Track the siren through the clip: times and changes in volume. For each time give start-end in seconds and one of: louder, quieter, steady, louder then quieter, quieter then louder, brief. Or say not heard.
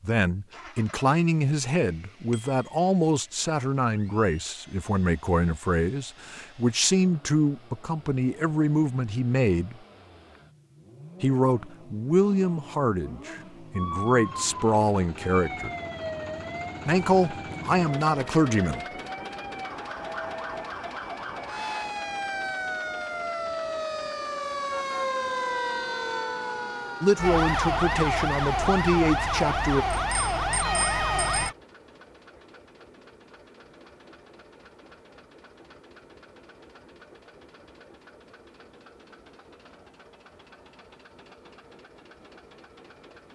13.8-31.6 louder.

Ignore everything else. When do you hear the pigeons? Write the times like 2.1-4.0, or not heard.
not heard.